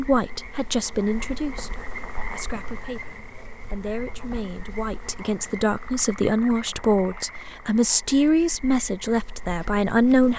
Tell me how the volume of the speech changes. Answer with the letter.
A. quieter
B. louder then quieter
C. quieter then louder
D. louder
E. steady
C.